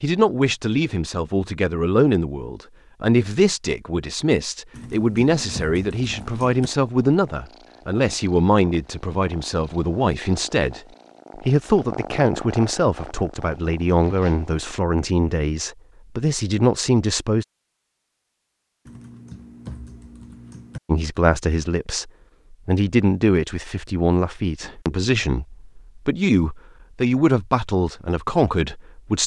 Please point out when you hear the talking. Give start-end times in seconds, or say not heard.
0.0-17.4, 20.9-29.2.